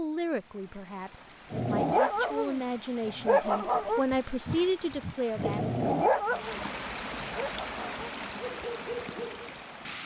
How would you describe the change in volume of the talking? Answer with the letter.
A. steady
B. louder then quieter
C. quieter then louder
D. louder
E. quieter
D.